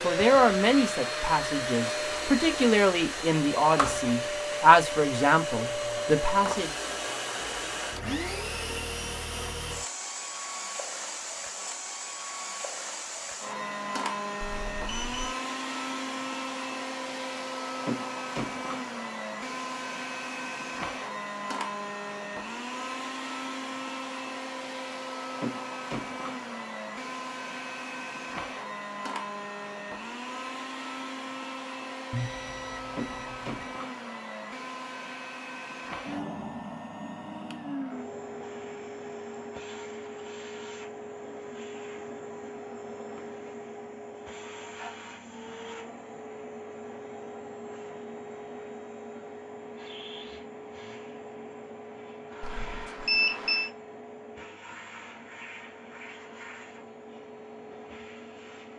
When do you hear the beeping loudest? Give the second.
53 s.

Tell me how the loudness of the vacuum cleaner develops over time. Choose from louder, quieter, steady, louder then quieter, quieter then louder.
quieter.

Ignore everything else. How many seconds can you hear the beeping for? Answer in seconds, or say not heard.
4 s.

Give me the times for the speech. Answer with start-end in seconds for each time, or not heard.
0.0-6.8.